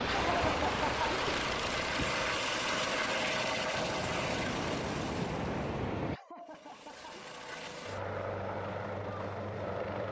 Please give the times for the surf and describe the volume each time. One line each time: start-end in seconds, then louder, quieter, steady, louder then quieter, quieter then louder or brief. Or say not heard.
0.0-6.2 quieter then louder.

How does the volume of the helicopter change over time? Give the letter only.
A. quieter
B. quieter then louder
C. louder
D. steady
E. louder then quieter
B.